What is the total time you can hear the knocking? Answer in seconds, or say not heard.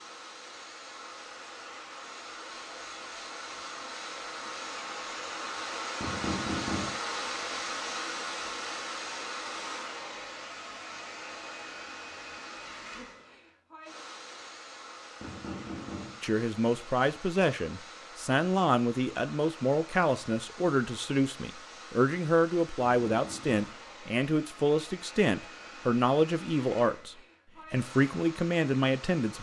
3 s.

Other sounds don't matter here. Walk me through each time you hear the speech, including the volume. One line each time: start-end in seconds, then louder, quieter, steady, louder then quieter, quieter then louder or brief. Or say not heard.
16.2-29.3 steady.